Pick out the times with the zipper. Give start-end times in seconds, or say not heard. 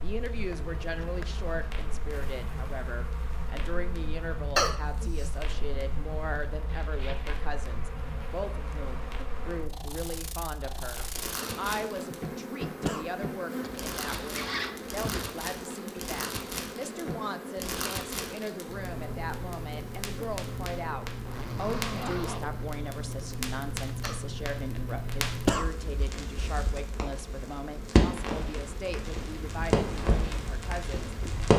6.7-7.3, 13.6-15.2, 21.2-22.5.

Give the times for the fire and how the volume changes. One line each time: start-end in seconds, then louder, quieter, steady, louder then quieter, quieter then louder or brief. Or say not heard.
0.0-31.5 louder.